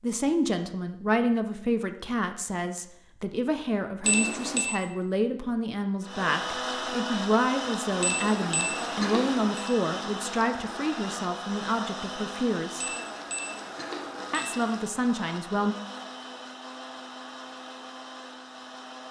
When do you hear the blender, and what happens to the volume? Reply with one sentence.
The blender can be heard from 6.0 to 19.0 s, getting quieter.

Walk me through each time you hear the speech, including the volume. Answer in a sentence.
The speech can be heard from 0.0 to 12.8 s, at a steady volume; and briefly from 14.3 to 15.8 s.